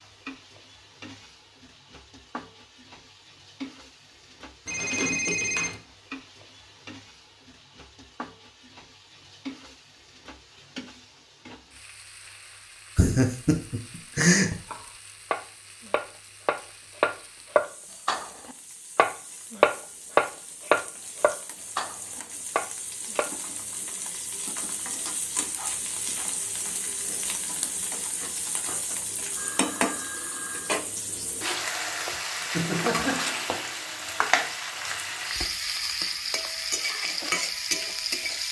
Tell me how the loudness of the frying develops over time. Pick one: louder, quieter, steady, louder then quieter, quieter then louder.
louder.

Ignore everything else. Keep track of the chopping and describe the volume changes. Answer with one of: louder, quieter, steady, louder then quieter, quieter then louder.
louder then quieter.